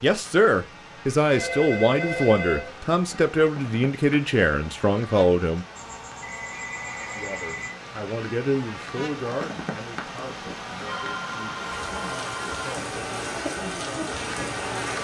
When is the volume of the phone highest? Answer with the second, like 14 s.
2 s.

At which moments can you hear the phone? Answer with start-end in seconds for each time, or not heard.
1.2-2.9, 5.8-7.7, 10.8-12.6.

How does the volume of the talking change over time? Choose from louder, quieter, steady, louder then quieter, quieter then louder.
quieter.